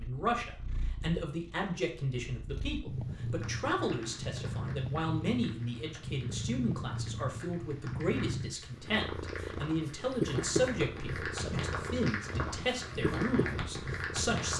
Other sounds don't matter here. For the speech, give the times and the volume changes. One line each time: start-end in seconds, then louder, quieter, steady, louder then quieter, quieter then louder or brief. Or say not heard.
0.0-14.5 steady.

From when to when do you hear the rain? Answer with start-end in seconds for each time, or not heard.
3.4-14.5.